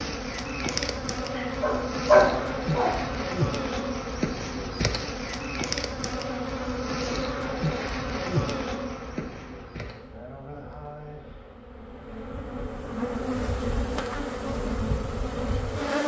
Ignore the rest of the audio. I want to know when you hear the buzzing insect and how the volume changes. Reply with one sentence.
The buzzing insect can be heard from 0.0 to 16.0 s, getting quieter then louder.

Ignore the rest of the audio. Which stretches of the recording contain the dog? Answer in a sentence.
You can hear the dog from 1.4 to 3.0 s.